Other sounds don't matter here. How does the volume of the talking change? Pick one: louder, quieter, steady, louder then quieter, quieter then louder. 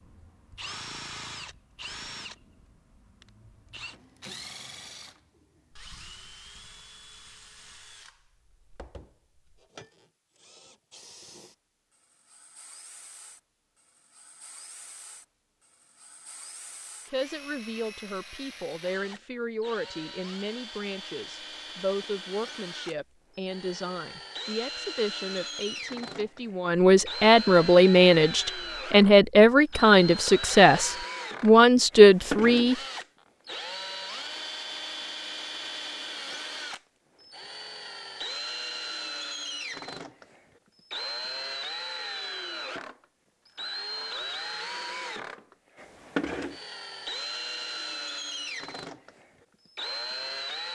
louder.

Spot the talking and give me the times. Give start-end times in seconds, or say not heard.
17.1-32.8.